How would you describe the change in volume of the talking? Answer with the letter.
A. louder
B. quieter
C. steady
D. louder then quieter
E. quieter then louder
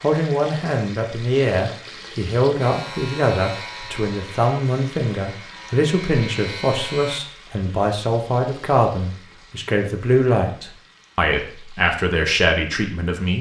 C.